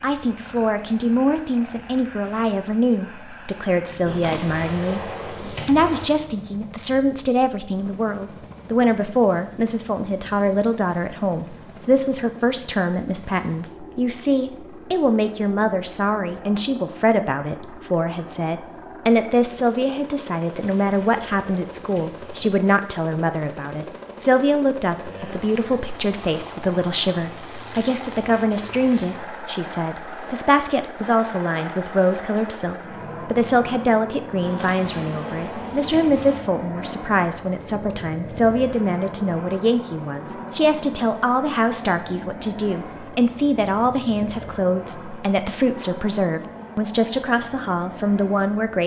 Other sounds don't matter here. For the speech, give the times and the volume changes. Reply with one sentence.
You can hear the speech from 0.0 to 48.8 s, at a steady volume.